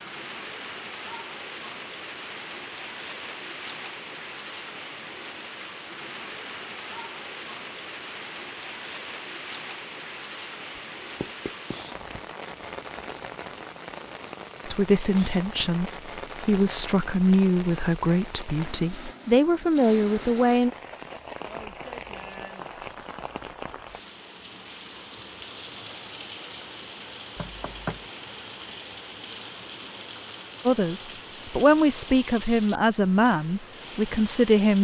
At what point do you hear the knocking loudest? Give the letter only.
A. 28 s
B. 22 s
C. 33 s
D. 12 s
A.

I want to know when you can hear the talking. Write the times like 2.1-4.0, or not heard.
14.7-20.7, 30.6-34.7.